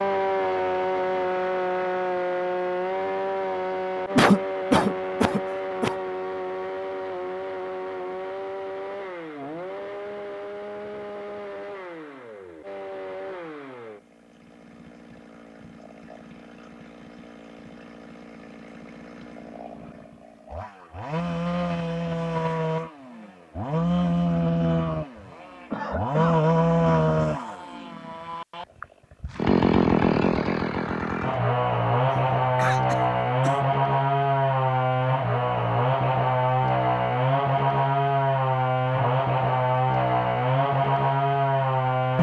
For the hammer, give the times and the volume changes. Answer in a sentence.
You can't hear the hammer here.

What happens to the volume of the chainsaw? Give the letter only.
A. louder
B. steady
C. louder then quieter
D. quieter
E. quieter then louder
E.